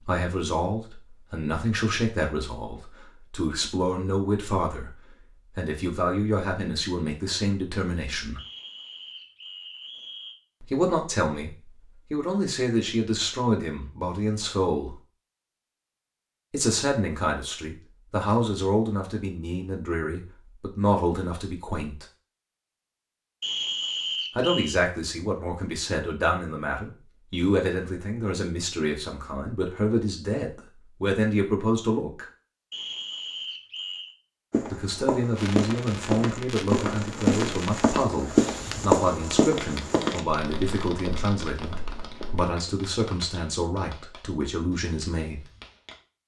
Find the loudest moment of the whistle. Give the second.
24 s.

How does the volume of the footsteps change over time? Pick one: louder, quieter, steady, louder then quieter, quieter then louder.
louder then quieter.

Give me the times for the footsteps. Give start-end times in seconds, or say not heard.
34.5-42.5.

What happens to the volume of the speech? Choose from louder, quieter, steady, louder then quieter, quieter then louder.
steady.